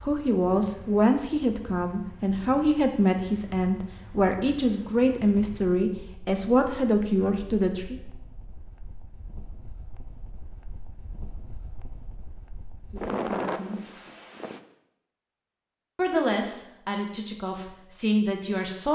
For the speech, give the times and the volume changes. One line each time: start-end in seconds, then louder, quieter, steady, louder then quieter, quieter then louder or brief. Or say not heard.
0.0-8.0 steady
12.9-13.9 brief
15.9-18.9 brief.